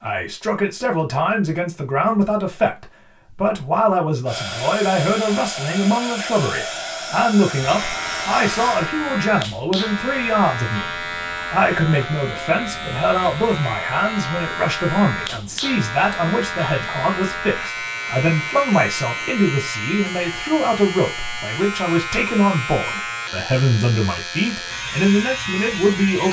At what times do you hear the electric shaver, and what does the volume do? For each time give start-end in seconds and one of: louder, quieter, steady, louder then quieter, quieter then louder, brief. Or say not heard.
7.5-26.2 steady.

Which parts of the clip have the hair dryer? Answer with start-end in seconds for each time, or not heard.
4.2-8.9.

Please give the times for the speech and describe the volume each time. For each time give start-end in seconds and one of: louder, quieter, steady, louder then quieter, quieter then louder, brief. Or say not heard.
0.0-26.2 steady.